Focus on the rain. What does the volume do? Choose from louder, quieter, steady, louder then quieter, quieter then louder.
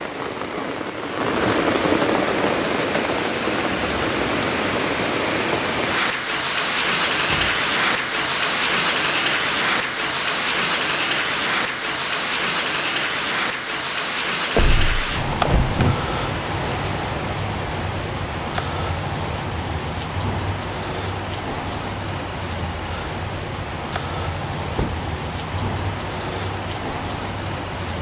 quieter.